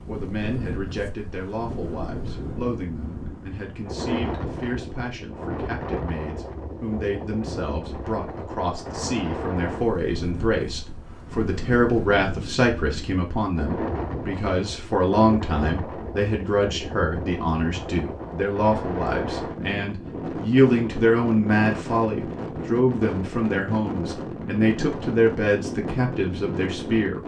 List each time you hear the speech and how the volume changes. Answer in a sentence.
You can hear the speech from 0.1 to 27.2 s, getting louder.